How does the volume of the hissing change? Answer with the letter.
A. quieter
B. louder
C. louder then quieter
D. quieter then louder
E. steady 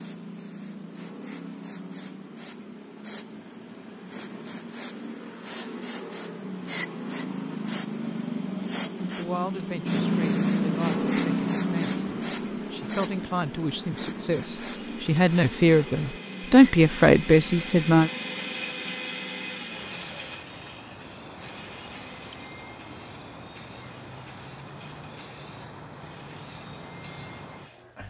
C.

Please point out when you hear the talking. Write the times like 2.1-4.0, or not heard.
9.2-18.1.